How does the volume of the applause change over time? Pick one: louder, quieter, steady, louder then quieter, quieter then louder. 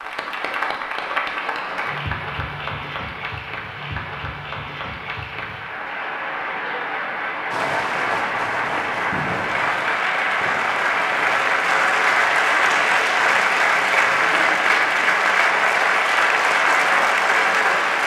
louder.